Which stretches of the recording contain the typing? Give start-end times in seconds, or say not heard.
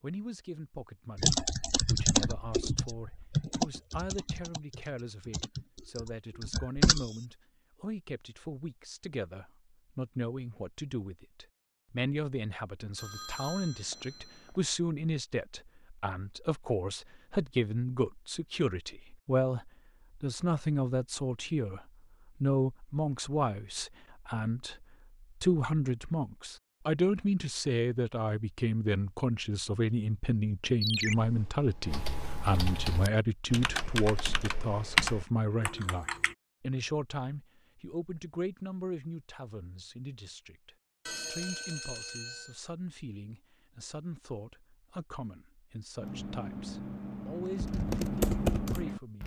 1.1-7.1, 31.1-36.4, 46.0-49.2.